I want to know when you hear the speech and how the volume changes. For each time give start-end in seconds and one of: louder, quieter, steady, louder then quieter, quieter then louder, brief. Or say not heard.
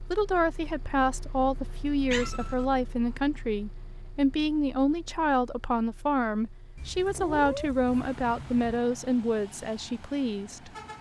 0.0-10.7 steady.